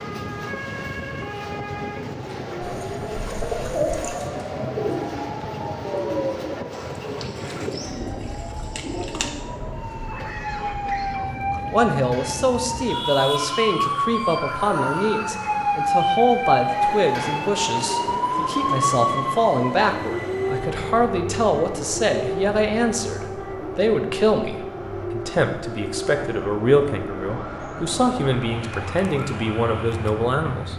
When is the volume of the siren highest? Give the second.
16 s.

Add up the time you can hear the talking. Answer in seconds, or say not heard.
19 s.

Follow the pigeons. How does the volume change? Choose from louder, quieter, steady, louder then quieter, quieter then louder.
quieter.